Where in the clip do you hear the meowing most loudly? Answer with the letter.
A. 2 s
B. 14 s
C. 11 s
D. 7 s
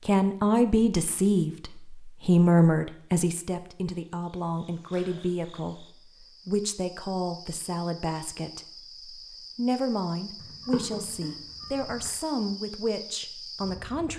C.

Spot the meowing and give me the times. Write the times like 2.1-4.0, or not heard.
10.4-12.1.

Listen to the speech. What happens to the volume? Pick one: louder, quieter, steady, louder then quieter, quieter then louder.
quieter.